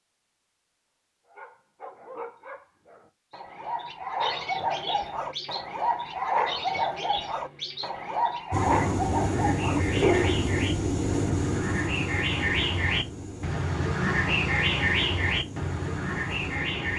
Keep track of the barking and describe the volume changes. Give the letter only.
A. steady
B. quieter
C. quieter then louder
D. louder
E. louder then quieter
D.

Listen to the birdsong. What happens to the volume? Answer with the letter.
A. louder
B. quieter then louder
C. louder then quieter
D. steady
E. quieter
A.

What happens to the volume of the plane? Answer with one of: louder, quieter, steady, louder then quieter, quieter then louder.
quieter.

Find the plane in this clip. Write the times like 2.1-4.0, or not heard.
8.5-16.9.